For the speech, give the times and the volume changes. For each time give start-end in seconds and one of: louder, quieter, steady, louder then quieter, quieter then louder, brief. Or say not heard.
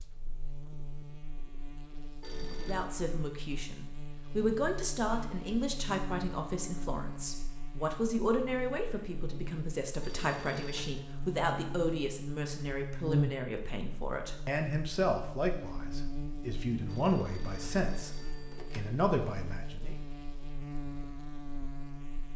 2.6-19.9 steady.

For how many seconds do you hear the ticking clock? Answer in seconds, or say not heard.
not heard.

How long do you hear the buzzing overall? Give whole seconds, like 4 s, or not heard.
22 s.